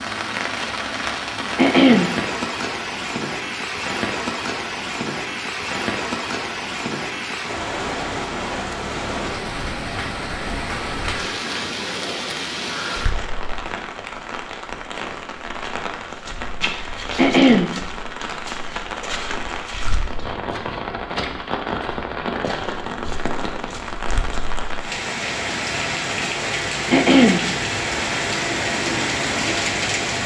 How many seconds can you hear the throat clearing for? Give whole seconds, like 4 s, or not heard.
2 s.